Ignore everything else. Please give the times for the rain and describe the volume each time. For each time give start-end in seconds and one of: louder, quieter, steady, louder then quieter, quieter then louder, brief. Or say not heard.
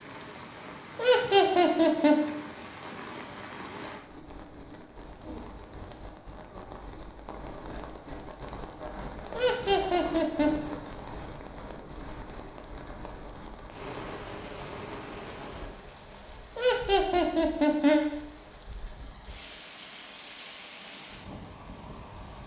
0.0-22.4 louder then quieter.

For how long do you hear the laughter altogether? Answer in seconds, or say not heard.
4 s.